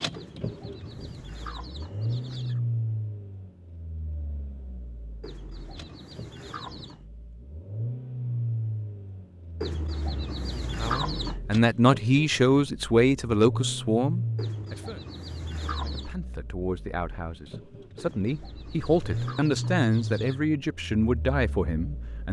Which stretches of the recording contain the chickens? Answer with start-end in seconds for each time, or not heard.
0.1-2.6, 5.2-7.0, 9.6-11.4, 14.3-16.1, 17.9-20.4.